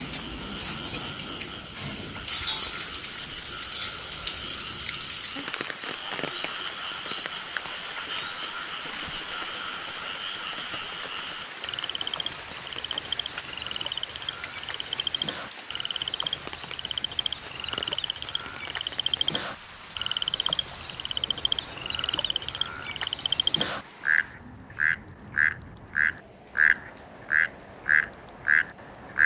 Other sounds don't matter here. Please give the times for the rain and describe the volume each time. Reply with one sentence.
You can hear the rain from 0.0 to 29.2 s, getting quieter.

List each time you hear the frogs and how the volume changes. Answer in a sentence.
The frogs can be heard from 0.0 to 29.2 s, getting louder.